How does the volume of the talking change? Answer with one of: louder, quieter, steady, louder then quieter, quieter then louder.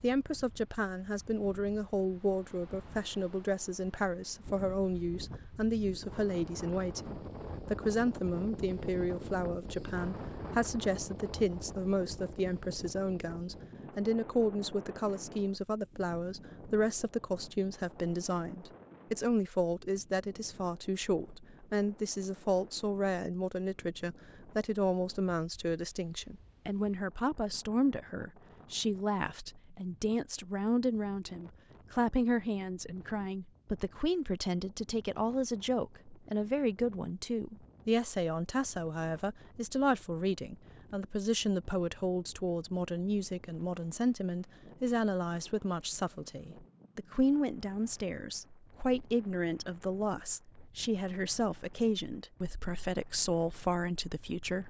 steady.